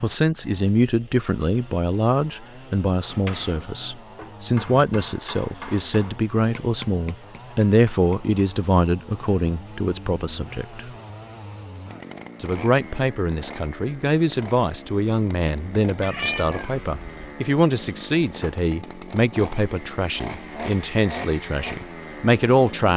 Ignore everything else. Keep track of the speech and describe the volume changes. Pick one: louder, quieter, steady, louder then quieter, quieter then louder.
steady.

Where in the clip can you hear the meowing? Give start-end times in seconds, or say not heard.
16.0-17.4.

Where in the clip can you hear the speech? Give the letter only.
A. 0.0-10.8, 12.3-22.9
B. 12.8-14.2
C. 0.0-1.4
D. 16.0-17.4
A.